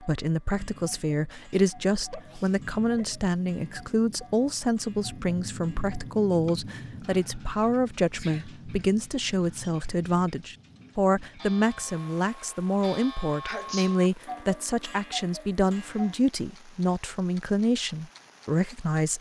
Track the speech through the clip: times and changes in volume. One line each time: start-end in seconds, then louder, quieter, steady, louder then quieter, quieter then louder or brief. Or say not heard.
0.0-19.1 steady.